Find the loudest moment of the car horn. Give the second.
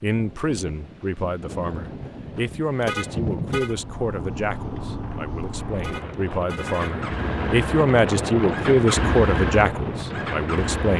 3 s.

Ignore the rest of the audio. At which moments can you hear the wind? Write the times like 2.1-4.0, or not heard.
0.0-10.9.